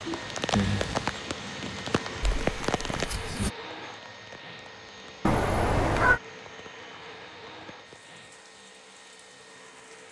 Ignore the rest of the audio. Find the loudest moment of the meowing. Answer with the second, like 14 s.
6 s.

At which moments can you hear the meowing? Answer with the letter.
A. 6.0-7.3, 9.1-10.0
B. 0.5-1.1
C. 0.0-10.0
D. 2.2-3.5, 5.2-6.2
D.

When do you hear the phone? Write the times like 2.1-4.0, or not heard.
0.5-1.1.